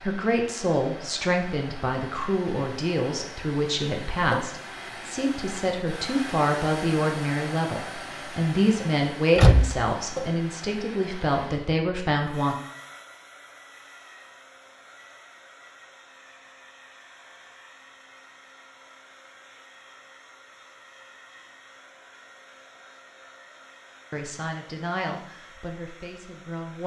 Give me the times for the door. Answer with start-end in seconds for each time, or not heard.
9.3-9.9.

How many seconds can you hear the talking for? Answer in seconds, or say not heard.
15 s.